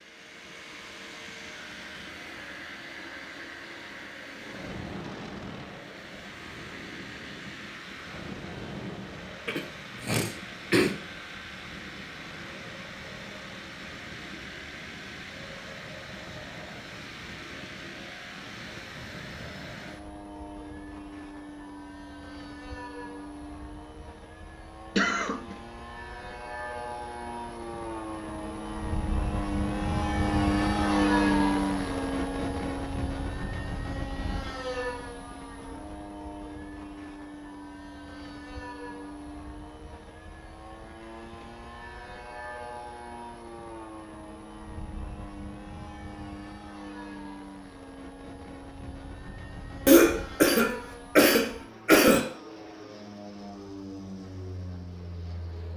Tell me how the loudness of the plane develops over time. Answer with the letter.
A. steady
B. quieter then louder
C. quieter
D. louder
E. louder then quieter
E.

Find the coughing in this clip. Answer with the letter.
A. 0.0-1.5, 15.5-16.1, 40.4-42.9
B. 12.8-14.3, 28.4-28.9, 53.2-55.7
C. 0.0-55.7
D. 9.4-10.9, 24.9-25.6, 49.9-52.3
D.